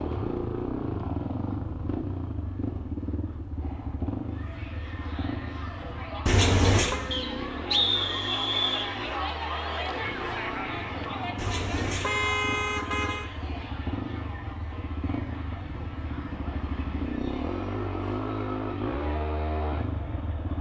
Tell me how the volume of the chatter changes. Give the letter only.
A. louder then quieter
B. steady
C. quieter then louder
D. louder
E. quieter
A.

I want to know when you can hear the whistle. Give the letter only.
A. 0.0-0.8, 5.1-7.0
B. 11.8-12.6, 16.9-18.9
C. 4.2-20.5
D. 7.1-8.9
D.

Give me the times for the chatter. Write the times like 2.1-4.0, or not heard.
4.2-20.5.